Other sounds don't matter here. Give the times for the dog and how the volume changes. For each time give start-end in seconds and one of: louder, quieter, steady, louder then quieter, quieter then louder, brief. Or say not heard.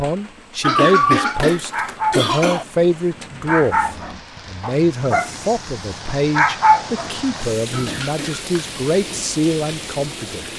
1.7-8.0 louder.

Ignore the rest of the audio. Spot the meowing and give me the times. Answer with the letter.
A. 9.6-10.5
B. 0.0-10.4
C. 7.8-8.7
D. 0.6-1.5
D.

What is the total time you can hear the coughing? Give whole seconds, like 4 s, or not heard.
3 s.